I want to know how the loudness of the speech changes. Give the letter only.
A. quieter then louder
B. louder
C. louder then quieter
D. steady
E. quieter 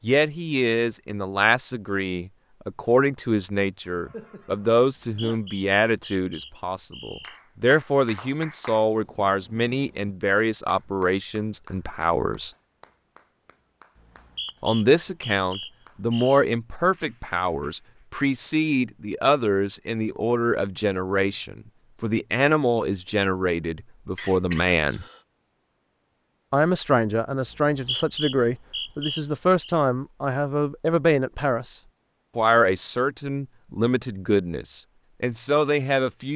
D.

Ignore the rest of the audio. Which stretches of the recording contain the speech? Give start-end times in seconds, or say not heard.
0.0-12.5, 14.6-25.1, 26.5-36.3.